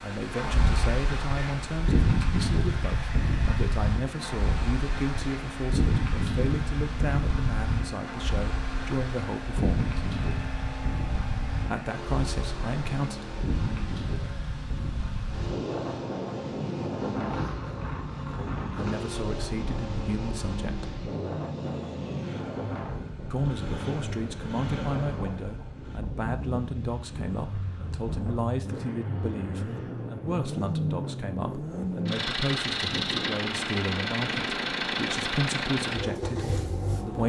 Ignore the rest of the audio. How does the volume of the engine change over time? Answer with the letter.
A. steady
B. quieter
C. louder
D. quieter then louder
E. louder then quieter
C.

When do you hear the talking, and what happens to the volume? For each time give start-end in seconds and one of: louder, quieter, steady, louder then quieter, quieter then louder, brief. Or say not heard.
0.0-9.9 steady
11.7-13.2 brief
18.7-20.9 brief
23.3-37.2 steady.